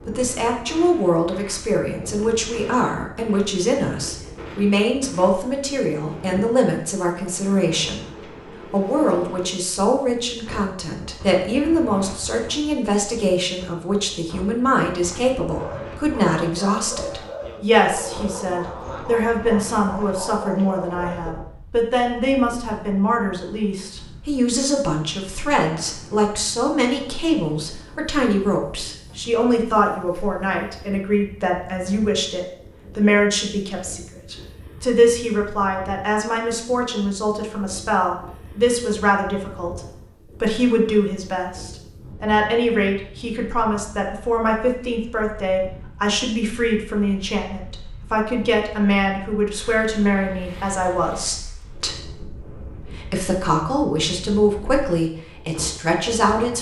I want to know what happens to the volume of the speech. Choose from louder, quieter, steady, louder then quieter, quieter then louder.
steady.